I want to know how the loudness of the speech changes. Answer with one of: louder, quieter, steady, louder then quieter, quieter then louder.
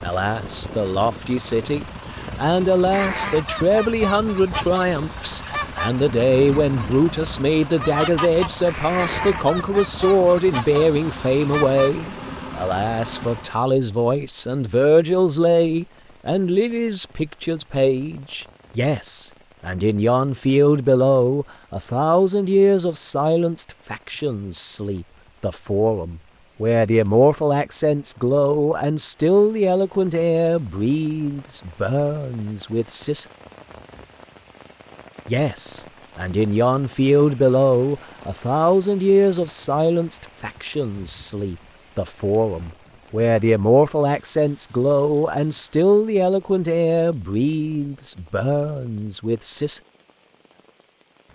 steady.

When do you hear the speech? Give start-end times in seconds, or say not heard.
0.0-33.2, 35.2-49.8.